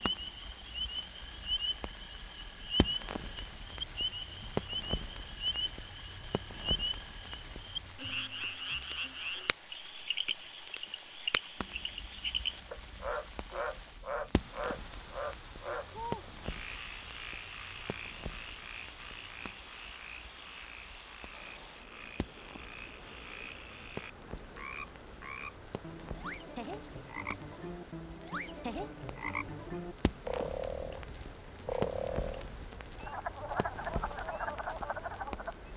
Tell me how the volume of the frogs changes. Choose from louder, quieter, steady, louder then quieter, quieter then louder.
quieter then louder.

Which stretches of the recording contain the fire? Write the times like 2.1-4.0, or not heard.
0.0-35.7.